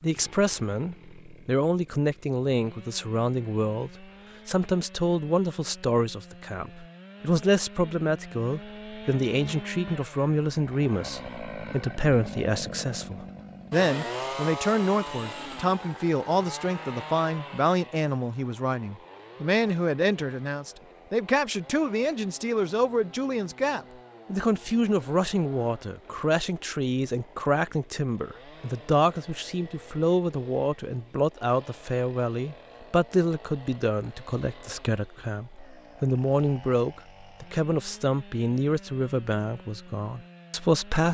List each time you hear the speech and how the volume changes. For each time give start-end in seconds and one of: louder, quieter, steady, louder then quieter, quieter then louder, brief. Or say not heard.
0.0-41.0 steady.